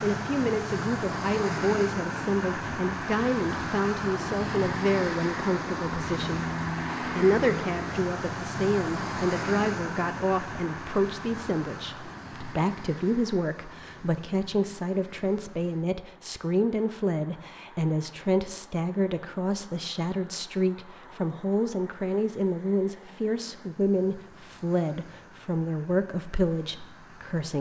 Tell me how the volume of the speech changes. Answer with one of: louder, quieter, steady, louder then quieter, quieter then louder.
steady.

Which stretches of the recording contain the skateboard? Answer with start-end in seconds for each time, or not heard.
not heard.